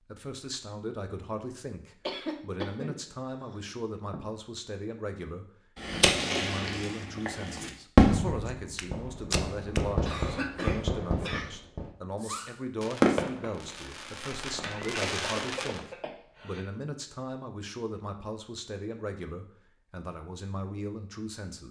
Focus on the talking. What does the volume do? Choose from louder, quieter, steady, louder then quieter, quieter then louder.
steady.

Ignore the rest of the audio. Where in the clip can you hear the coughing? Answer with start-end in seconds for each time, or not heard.
2.0-4.2, 10.0-11.6, 14.6-16.6.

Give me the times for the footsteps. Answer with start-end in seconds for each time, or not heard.
8.4-9.9.